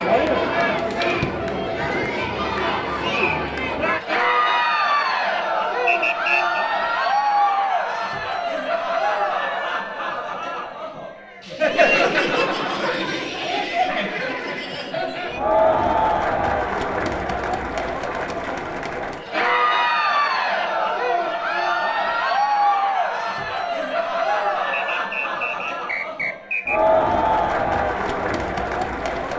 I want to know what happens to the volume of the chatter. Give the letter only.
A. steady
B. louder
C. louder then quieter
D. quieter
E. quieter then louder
A.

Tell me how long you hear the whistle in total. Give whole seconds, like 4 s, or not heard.
3 s.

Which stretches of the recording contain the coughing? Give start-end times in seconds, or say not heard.
not heard.